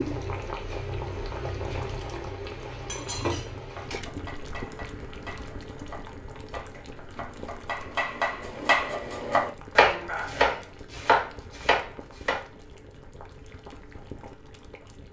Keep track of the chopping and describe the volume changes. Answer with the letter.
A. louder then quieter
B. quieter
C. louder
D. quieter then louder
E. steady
C.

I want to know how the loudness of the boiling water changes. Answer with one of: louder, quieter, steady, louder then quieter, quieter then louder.
quieter.